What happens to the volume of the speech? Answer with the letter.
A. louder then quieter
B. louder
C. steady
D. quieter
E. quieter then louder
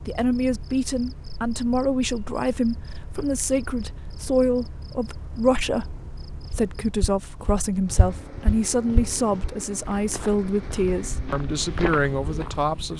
C.